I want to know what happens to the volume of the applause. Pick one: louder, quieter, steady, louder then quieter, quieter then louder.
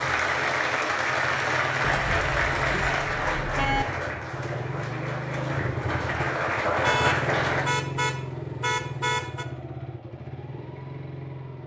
quieter then louder.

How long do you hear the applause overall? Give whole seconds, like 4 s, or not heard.
8 s.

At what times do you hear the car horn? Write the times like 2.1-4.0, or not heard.
1.8-3.9, 6.8-9.4.